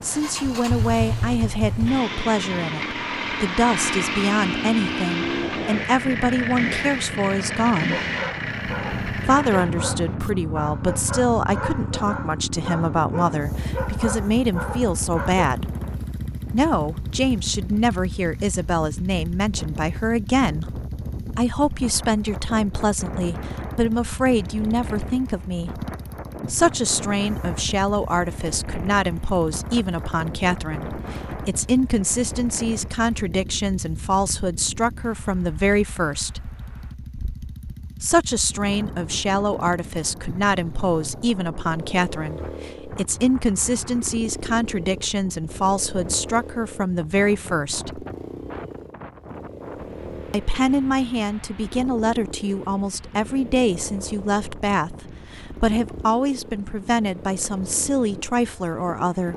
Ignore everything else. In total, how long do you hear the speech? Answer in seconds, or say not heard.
53 s.